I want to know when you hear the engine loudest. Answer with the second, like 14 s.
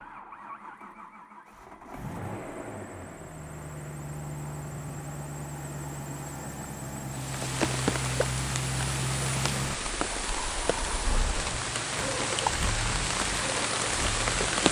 9 s.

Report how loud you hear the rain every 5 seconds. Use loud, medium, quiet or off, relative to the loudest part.
off, loud, loud.